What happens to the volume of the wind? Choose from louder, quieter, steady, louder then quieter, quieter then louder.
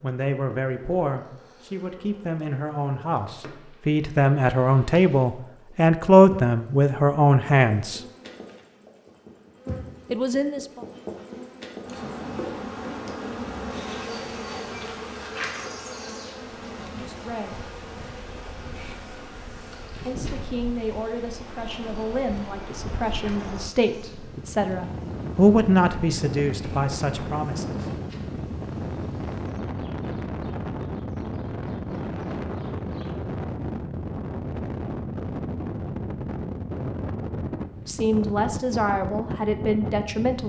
louder.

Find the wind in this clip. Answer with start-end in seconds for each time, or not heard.
16.4-40.4.